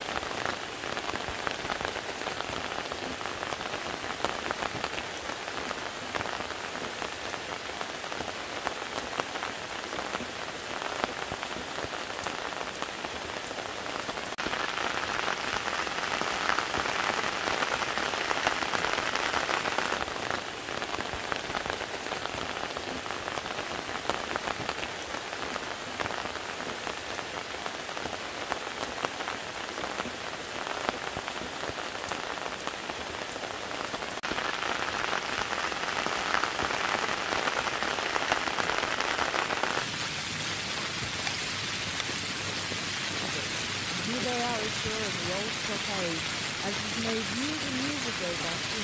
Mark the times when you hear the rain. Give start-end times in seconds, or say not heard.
0.0-48.7.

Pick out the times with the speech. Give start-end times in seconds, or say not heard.
43.2-48.7.